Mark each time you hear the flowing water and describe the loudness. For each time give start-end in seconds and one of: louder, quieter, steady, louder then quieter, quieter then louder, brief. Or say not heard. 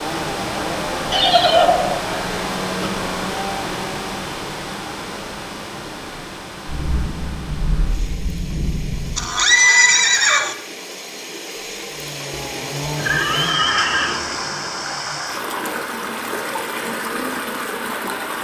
0.0-18.3 quieter then louder.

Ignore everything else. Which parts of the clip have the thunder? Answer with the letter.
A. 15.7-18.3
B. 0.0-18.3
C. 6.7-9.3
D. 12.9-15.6
C.